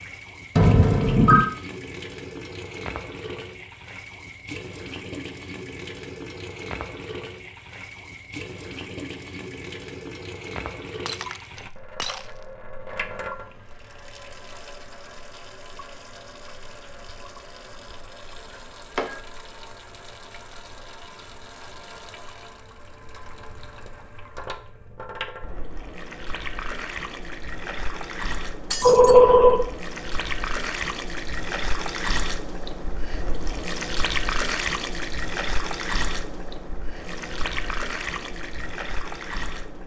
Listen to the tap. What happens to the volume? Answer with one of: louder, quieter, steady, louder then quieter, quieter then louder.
quieter then louder.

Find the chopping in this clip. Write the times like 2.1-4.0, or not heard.
not heard.